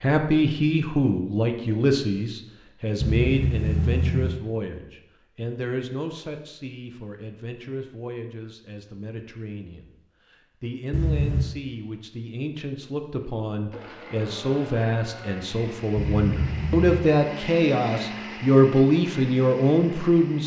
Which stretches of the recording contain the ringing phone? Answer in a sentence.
The ringing phone can be heard from 3.0 to 4.4 s, from 10.9 to 11.6 s and from 15.9 to 17.0 s.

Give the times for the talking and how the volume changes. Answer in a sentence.
The talking can be heard from 0.0 to 20.4 s, getting quieter then louder.